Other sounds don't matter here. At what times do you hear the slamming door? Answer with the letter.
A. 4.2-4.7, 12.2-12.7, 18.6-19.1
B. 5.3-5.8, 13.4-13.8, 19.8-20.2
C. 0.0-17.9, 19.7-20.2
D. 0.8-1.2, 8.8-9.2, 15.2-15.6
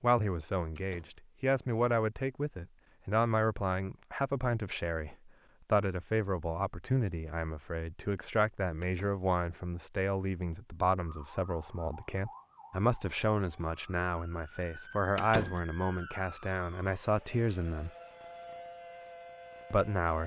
D.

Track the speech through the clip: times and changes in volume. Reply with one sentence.
You can hear the speech from 0.0 to 17.9 s, at a steady volume; and briefly from 19.7 to 20.2 s.